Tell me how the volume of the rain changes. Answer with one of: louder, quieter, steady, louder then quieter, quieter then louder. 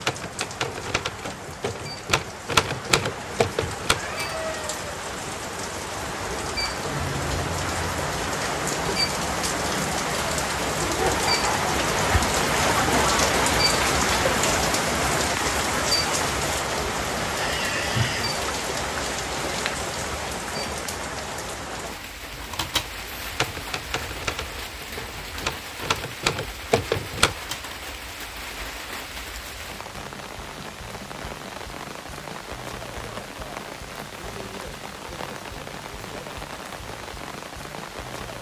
louder then quieter.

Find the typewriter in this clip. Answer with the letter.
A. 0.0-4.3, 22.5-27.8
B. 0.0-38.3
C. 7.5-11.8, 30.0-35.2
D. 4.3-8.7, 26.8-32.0
A.